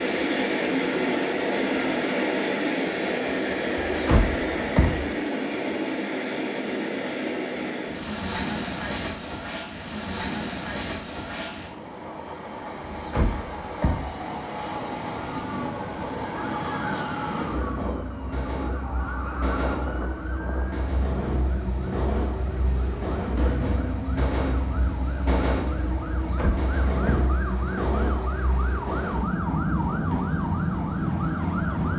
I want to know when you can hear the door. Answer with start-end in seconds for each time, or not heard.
3.8-5.1, 12.8-14.2, 26.1-27.2.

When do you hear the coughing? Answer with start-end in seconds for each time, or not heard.
not heard.